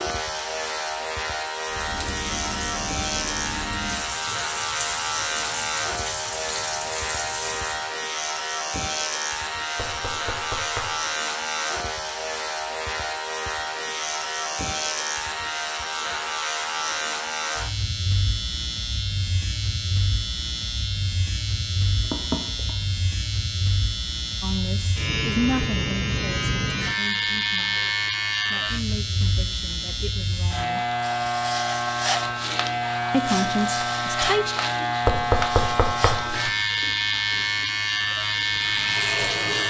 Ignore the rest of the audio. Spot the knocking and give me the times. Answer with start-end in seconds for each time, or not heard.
9.8-10.9, 21.6-22.8, 35.0-36.5.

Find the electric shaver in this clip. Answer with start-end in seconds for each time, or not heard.
0.0-39.6.